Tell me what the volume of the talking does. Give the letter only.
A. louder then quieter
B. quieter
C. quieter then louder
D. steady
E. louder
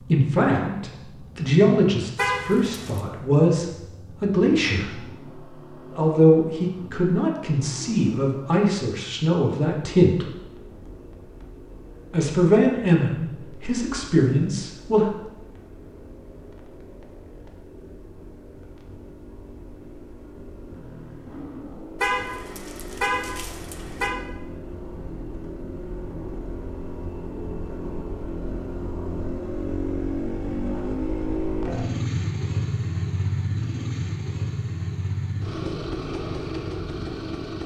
D.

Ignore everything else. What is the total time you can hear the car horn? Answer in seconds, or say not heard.
3 s.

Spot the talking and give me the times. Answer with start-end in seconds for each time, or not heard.
0.0-10.2, 12.1-15.1.